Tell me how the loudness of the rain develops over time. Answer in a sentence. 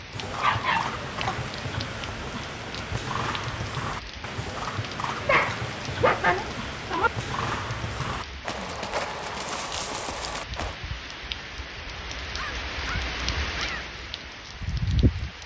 The volume of the rain goes up.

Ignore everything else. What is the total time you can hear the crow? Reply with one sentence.
You can't hear the crow here.